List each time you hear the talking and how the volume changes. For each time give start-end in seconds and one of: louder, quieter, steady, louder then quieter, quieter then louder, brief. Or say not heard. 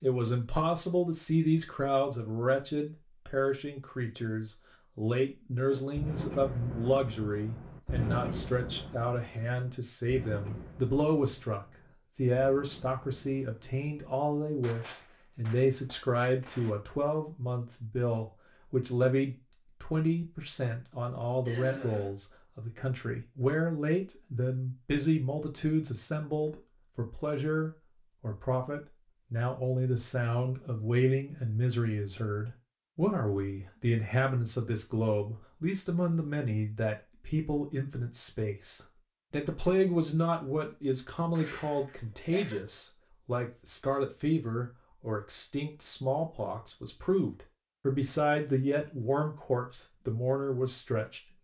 0.0-51.3 steady.